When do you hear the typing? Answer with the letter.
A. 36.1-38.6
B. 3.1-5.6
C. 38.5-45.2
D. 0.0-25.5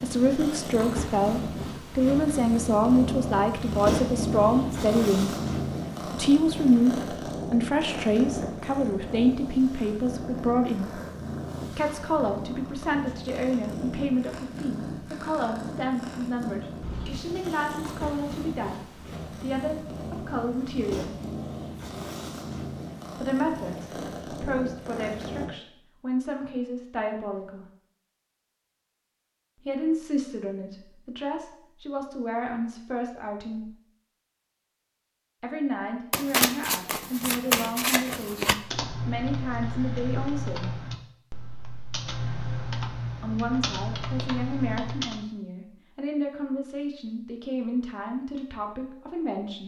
C.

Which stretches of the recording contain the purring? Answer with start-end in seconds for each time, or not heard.
0.0-25.5.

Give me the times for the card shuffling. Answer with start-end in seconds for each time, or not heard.
36.1-38.6.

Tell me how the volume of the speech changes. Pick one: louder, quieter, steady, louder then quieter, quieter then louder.
quieter.